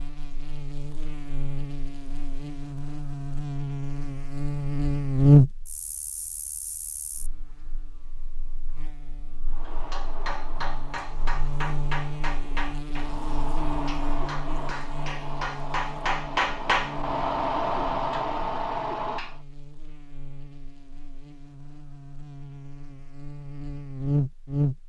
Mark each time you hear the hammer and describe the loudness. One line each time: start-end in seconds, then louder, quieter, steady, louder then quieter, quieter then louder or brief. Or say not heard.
9.5-19.4 louder.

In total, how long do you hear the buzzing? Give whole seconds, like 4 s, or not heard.
25 s.